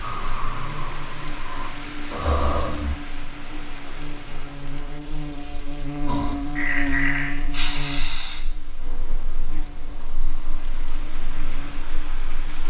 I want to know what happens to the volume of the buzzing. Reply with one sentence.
The volume of the buzzing goes up, then down.